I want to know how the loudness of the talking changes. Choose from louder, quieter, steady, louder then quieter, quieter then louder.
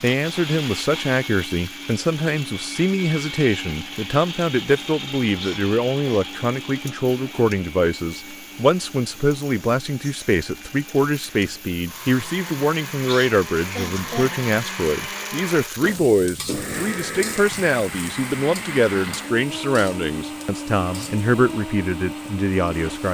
steady.